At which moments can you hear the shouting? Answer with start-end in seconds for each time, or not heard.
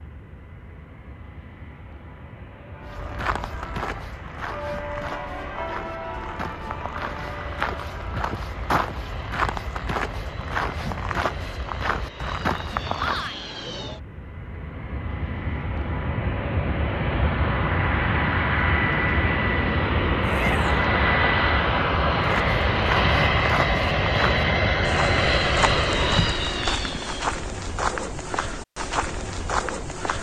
12.9-13.6, 20.2-20.9.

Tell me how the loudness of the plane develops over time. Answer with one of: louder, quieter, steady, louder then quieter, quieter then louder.
louder.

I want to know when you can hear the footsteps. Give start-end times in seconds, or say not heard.
2.9-13.3, 22.1-30.1.